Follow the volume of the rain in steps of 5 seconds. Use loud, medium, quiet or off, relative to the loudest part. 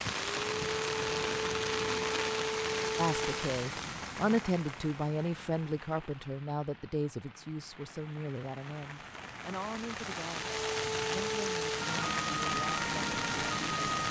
loud, quiet, loud.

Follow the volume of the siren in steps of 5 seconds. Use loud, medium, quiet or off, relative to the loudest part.
loud, off, loud.